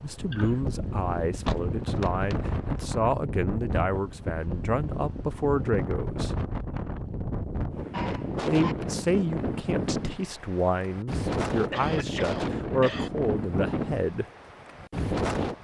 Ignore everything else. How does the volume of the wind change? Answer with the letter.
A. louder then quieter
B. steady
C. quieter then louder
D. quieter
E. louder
B.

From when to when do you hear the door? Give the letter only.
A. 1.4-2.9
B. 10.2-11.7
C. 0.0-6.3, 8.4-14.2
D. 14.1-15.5
A.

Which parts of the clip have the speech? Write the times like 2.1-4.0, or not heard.
0.0-6.3, 8.4-14.2.